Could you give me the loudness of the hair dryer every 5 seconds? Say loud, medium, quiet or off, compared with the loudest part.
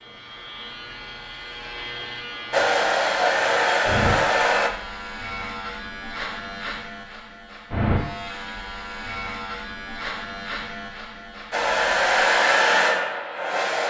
loud, off, loud.